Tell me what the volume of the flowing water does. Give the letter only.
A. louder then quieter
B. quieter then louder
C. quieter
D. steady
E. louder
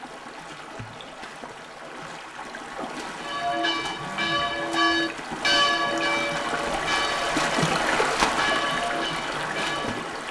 E.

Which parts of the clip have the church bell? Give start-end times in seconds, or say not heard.
3.2-10.1.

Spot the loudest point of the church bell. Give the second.
6 s.